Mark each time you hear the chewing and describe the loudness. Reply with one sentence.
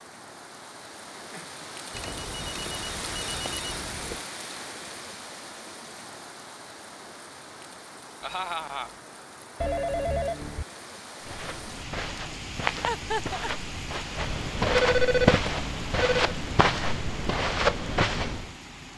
The chewing can't be heard in this clip.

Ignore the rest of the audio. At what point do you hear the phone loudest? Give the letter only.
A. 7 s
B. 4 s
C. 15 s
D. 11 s
C.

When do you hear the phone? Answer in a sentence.
The phone can be heard from 1.9 to 4.2 s, from 9.6 to 10.7 s and from 14.7 to 16.4 s.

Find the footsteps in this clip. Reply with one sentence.
The footsteps can be heard from 11.2 to 18.5 s.